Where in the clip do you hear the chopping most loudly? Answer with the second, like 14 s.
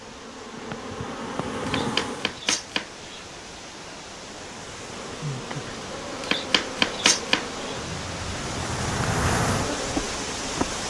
7 s.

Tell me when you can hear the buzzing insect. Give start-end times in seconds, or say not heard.
0.0-2.4, 4.5-10.8.